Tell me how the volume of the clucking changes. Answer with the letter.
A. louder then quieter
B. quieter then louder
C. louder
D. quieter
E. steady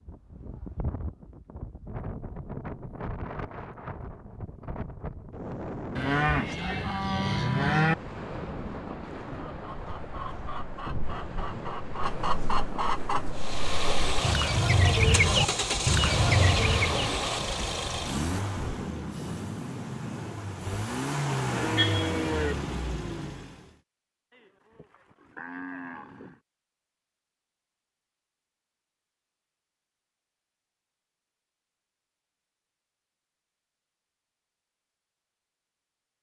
C.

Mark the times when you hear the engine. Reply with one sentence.
You can hear the engine from 13.3 to 23.6 s.